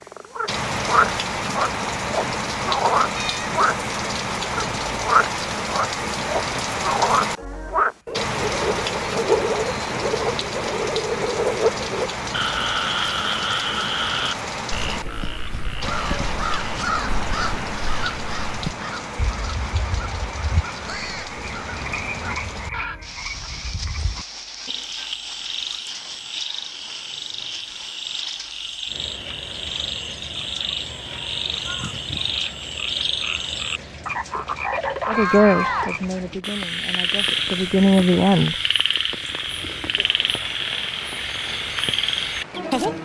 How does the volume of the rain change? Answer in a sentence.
The loudness of the rain goes down.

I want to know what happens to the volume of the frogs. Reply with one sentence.
The loudness of the frogs goes down, then up.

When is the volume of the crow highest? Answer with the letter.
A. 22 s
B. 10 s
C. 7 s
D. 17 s
D.